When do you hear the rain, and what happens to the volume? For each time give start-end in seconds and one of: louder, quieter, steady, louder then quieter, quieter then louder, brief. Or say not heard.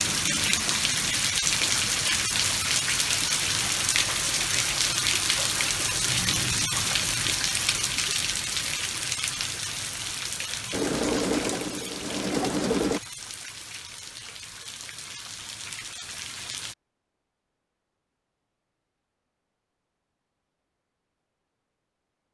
0.0-16.8 quieter.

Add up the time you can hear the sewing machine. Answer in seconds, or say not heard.
2 s.